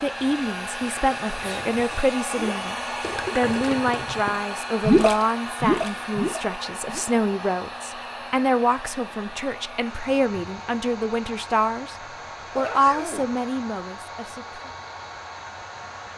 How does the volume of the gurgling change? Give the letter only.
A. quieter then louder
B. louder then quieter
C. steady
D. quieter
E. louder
B.